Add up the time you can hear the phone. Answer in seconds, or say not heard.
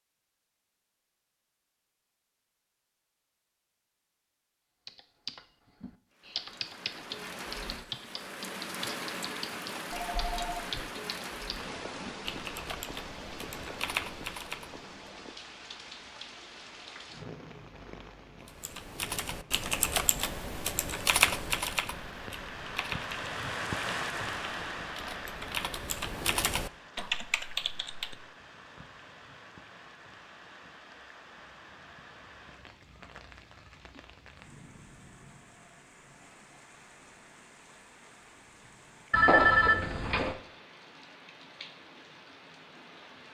2 s.